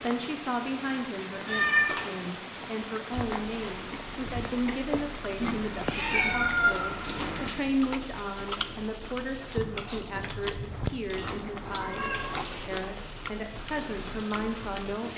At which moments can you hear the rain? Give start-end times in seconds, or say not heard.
0.0-15.1.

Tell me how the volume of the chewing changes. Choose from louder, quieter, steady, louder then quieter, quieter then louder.
steady.